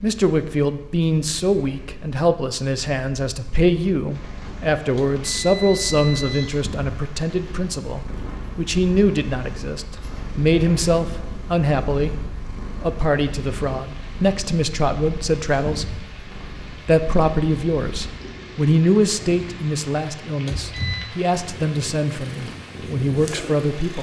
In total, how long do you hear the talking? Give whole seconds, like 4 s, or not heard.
23 s.